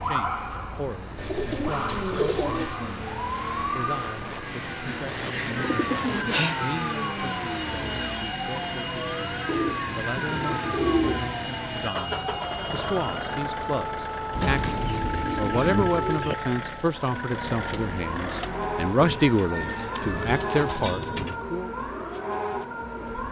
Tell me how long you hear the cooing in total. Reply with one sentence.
The cooing can be heard for 10 seconds in total.